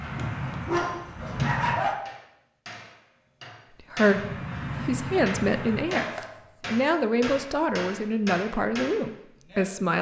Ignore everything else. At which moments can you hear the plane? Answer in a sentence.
You can hear the plane from 0.0 to 1.8 s and from 4.0 to 5.8 s.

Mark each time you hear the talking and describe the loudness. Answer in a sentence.
The talking can be heard from 3.9 to 9.9 s, at a steady volume.